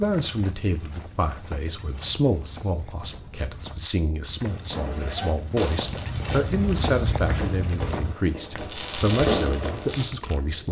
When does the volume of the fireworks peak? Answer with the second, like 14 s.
9 s.